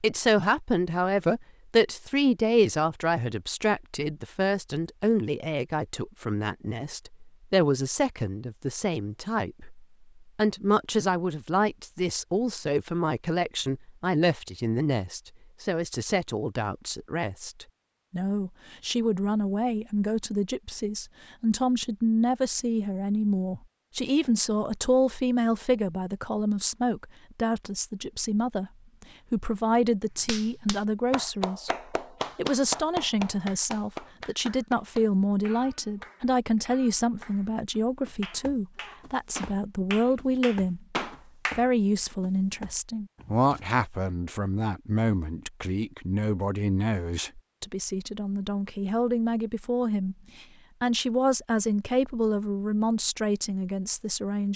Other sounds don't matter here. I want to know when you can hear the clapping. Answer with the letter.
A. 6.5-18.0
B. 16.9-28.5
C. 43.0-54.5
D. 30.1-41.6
D.